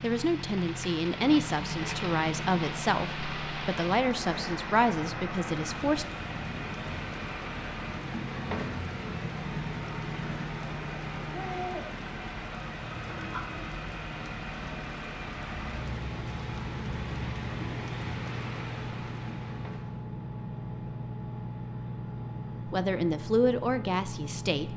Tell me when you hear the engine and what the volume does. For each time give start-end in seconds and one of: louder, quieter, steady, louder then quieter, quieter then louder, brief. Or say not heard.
0.0-24.7 steady.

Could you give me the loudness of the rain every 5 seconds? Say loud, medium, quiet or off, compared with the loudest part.
loud, loud, loud, loud, off.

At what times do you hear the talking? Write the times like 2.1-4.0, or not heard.
0.0-6.0, 22.7-24.7.